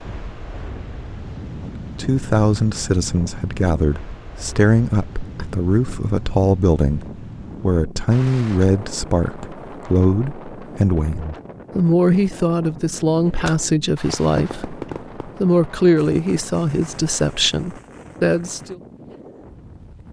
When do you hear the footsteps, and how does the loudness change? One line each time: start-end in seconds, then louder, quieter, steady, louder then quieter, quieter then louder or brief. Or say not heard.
not heard.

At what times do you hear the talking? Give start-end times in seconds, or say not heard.
1.6-18.8.